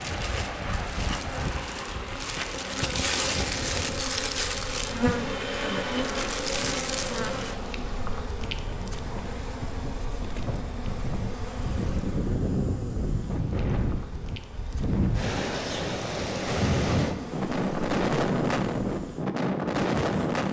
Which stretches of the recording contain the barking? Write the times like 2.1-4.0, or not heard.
not heard.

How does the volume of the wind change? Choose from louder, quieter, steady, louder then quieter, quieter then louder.
quieter then louder.